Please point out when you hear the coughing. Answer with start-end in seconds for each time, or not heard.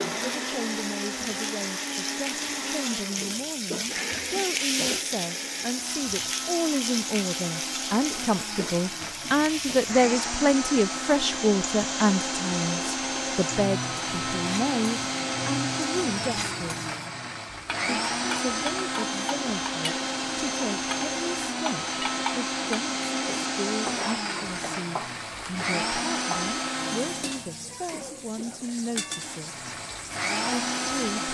27.9-28.6.